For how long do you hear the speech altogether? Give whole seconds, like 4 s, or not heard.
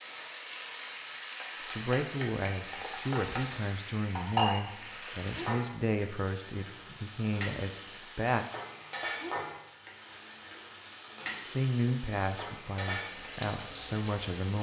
10 s.